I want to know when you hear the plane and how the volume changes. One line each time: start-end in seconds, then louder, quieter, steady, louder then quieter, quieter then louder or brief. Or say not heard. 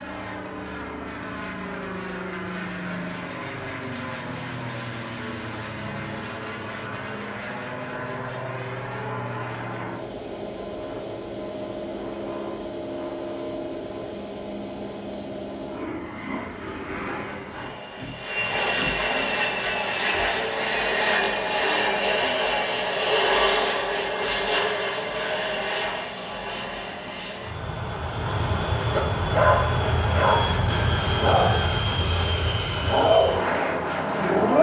0.0-34.5 louder.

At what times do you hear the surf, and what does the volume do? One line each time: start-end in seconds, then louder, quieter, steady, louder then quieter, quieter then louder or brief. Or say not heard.
not heard.